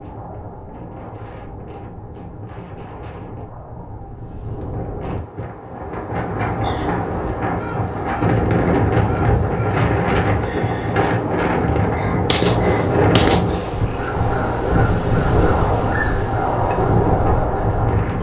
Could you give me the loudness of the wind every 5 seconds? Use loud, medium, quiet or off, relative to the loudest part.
quiet, loud, loud, loud.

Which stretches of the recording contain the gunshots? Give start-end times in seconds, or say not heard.
12.3-13.8.